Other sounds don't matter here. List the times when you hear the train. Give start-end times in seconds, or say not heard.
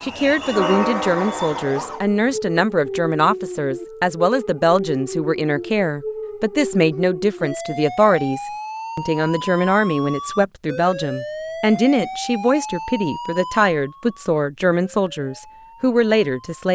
0.0-2.4.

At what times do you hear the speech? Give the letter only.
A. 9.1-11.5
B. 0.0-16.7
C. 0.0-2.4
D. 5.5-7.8
B.